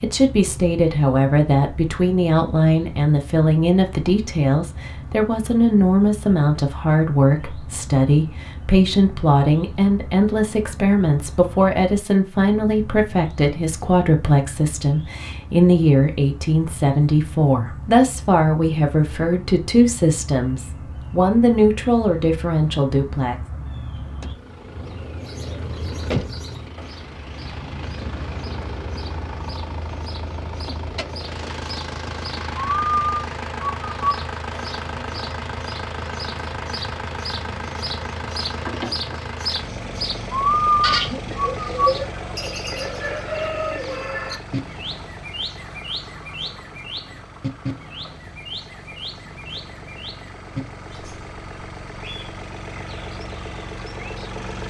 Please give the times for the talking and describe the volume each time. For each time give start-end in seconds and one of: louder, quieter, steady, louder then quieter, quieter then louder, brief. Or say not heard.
0.0-23.4 steady.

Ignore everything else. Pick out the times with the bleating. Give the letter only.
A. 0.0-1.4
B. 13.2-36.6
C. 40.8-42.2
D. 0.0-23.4
C.